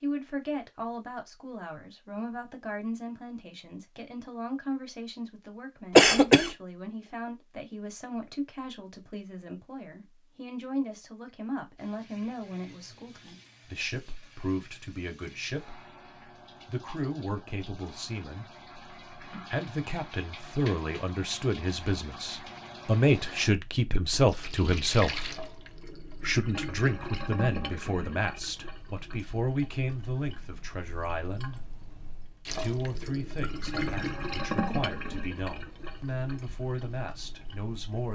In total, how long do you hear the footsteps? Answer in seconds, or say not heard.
not heard.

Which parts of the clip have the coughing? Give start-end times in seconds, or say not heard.
6.0-6.5.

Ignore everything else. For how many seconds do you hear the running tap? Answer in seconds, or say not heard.
26 s.